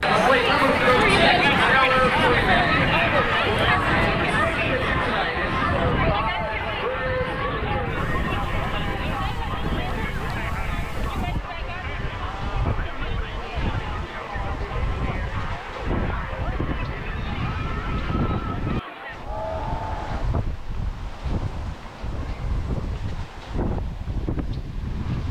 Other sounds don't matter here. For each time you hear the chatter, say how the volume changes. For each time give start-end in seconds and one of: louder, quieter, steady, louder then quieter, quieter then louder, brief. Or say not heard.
0.0-20.3 quieter.